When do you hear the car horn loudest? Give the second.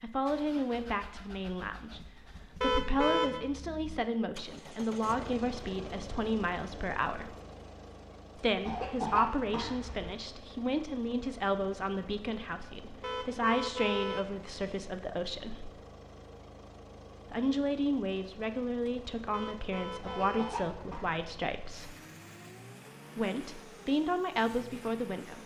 3 s.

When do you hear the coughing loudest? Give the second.
9 s.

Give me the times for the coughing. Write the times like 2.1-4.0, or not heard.
8.7-10.2, 20.0-21.1.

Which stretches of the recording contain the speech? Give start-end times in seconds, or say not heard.
0.0-7.3, 8.3-15.7, 17.3-21.9, 23.1-25.4.